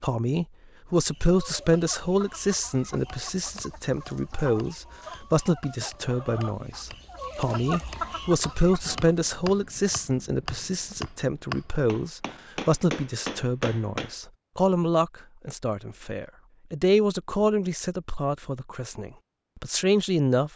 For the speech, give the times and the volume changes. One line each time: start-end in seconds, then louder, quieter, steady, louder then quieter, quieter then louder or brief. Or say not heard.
0.0-20.5 steady.